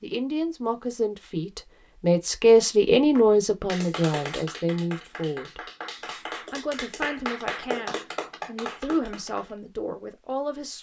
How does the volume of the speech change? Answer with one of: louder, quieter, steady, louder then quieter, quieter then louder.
louder then quieter.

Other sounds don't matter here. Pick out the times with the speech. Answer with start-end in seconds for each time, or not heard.
0.0-5.7, 6.5-10.7.